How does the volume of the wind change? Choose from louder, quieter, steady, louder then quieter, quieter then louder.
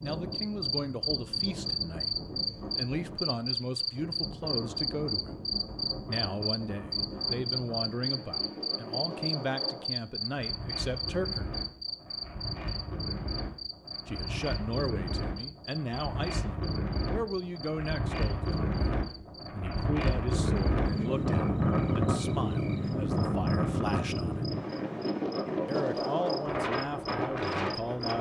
louder.